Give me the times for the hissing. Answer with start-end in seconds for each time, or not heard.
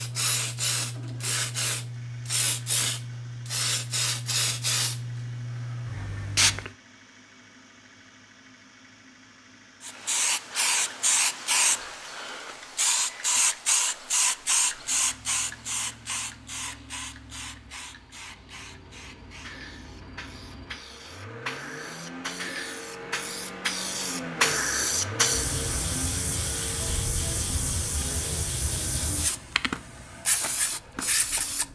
0.0-6.7, 9.8-31.6.